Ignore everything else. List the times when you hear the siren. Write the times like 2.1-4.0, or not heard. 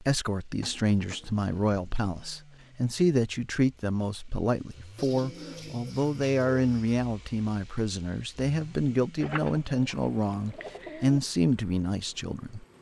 not heard.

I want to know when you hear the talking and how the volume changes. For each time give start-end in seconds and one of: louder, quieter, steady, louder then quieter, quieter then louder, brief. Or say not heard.
0.0-12.7 steady.